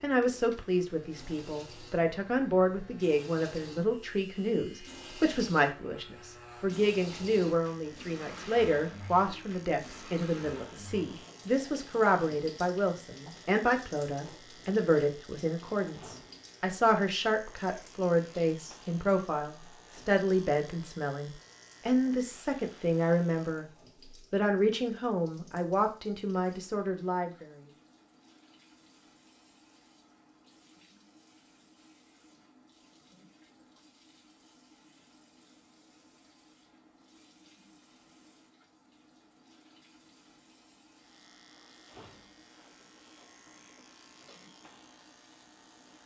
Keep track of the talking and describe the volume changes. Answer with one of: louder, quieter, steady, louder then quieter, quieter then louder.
steady.